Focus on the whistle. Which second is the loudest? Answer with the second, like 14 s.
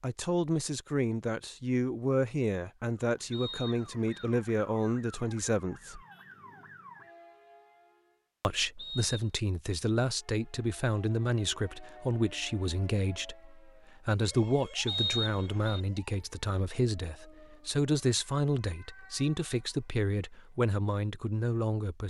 15 s.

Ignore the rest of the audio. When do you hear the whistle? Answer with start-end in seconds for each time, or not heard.
3.3-4.2, 8.8-9.3, 14.8-15.8.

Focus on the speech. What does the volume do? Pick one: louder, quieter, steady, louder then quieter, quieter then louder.
steady.